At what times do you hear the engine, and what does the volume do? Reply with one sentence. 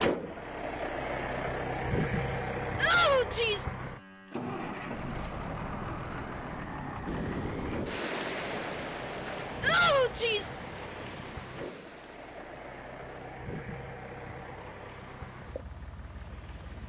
You can hear the engine from 0.0 to 16.8 s, getting quieter.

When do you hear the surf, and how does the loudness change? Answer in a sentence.
The surf can be heard from 7.0 to 16.8 s, getting quieter.